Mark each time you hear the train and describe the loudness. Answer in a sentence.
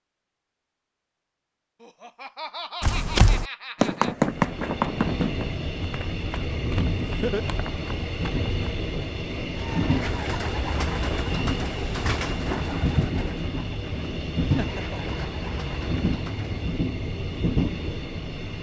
The train can be heard from 4.1 to 18.5 s, at a steady volume.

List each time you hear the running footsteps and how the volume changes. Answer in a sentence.
You can hear the running footsteps from 2.8 to 8.8 s, getting quieter.